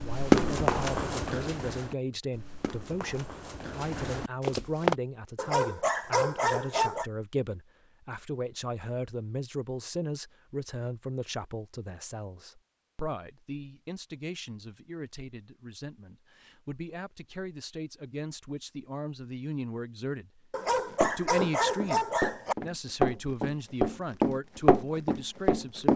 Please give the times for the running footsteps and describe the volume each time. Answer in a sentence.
You can hear the running footsteps from 0.0 to 5.0 s, getting quieter then louder; and from 20.9 to 25.9 s, getting louder.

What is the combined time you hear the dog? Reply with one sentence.
You can hear the dog for 4 seconds altogether.